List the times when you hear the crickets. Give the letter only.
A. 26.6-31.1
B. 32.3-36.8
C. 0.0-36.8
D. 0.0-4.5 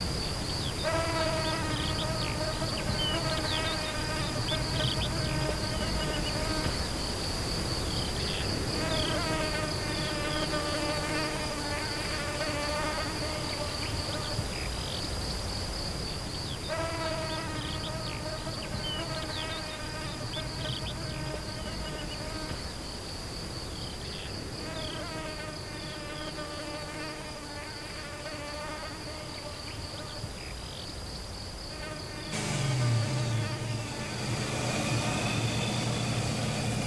C.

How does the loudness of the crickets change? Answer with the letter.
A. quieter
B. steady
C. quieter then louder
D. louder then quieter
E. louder
A.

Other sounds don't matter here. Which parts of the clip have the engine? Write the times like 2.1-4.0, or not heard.
32.3-36.8.